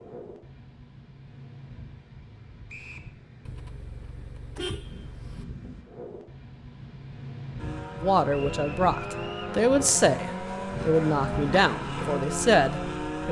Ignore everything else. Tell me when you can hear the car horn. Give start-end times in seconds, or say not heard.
3.5-5.5.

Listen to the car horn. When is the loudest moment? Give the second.
5 s.